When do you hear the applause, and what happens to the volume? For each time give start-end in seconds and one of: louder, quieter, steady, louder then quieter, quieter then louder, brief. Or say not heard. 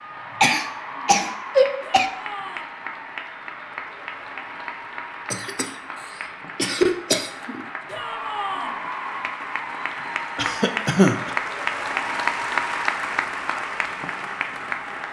0.0-15.0 louder.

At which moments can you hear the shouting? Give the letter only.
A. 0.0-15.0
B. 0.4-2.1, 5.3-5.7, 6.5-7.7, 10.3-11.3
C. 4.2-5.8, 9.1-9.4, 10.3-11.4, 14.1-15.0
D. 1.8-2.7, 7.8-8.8
D.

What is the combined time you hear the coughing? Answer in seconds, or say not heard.
4 s.